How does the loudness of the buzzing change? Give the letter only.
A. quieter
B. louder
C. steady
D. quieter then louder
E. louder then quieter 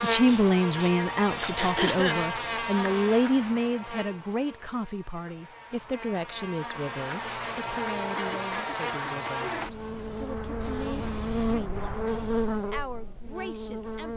D.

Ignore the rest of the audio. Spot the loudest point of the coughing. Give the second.
2 s.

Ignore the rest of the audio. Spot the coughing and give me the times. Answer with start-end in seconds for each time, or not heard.
1.6-2.2, 8.2-9.4.